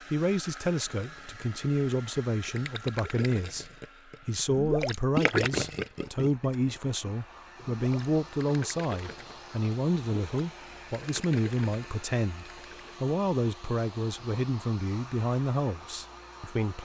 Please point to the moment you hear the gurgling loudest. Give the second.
5 s.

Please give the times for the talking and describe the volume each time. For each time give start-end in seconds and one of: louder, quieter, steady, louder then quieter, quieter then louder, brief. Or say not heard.
0.1-16.7 steady.